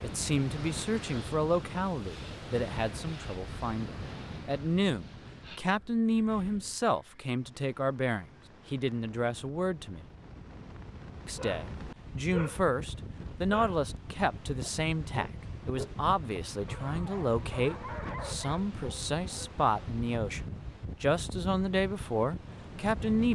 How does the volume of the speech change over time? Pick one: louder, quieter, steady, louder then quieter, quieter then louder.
steady.